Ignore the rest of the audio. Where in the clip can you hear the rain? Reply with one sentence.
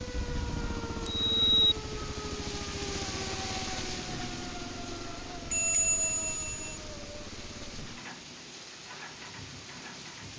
You can hear the rain from 0.0 to 10.3 s.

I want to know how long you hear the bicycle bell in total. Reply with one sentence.
The bicycle bell can be heard for 3 seconds in total.